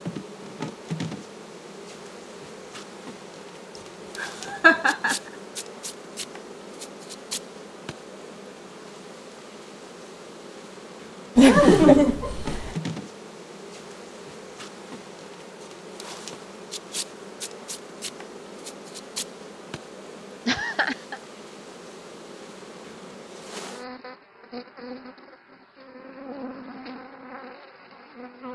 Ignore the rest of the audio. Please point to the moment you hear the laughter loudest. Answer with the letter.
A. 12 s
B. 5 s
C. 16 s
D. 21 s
A.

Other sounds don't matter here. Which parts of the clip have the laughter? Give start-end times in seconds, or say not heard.
4.2-5.2, 11.3-12.8, 20.4-21.2.